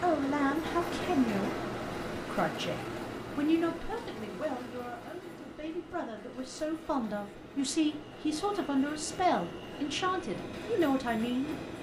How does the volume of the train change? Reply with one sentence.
The volume of the train goes down, then up.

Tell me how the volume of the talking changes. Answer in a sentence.
The volume of the talking goes down, then up.